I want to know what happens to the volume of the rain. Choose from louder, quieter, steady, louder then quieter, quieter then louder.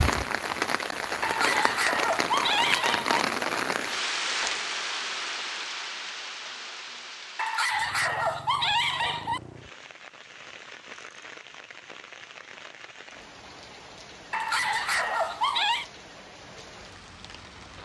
quieter.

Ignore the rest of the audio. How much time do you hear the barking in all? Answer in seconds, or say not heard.
6 s.